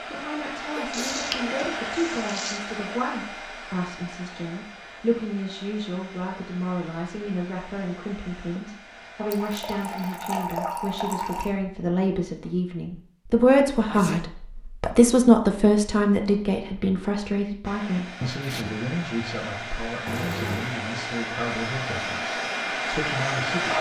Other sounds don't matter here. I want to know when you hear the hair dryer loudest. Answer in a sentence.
The volume of the hair dryer peaks at 23 seconds.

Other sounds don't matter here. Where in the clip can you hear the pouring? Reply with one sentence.
You can hear the pouring from 0.9 to 2.6 s, from 9.3 to 11.6 s and from 20.1 to 20.8 s.